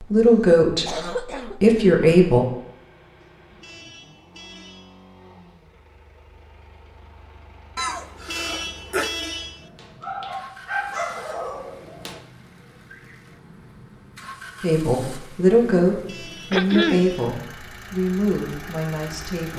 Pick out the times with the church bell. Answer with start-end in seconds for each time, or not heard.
not heard.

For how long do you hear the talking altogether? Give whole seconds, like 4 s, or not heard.
7 s.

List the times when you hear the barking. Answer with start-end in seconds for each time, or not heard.
9.6-12.2.